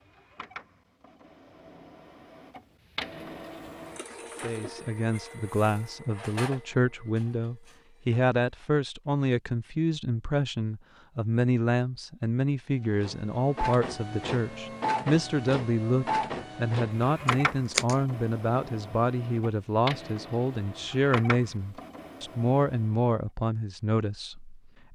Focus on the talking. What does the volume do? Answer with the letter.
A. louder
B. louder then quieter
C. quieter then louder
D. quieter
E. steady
E.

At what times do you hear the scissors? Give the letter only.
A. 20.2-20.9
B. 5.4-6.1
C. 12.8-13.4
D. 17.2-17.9
D.